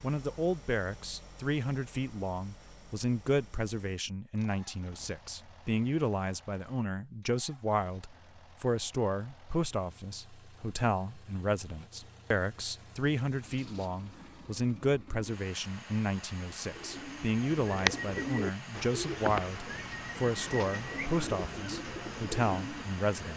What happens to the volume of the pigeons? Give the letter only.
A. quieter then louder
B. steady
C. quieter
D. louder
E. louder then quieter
C.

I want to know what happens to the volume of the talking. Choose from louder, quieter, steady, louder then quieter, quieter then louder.
steady.